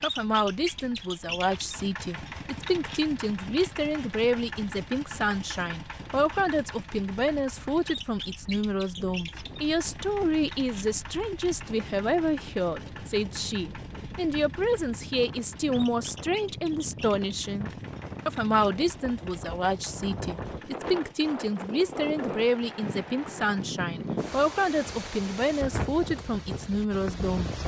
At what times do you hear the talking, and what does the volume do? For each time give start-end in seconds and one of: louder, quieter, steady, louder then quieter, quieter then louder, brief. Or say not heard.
0.0-27.6 steady.